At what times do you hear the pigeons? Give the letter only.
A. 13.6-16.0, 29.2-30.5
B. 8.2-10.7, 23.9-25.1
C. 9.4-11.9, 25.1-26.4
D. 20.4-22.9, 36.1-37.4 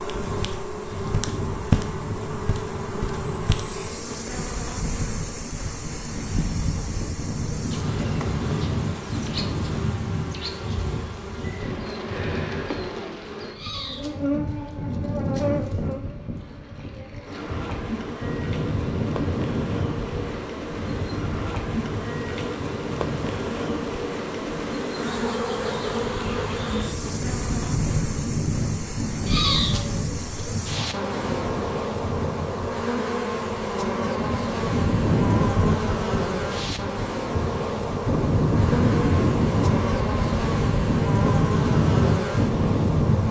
A.